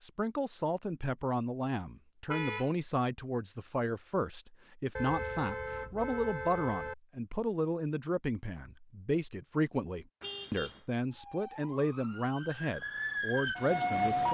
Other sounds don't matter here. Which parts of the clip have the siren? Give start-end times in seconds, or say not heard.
11.1-14.2.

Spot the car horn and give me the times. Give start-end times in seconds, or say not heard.
2.2-2.8, 5.0-7.0, 10.2-10.8.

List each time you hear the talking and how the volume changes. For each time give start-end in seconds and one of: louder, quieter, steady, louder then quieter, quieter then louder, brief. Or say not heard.
0.0-14.2 steady.